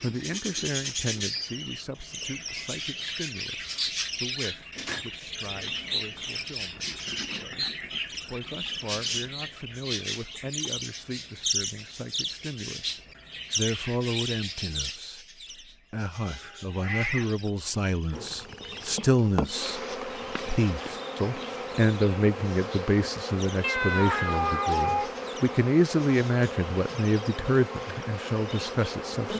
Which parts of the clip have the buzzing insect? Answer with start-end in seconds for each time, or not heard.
18.1-29.3.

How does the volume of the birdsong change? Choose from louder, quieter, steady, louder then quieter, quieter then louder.
quieter.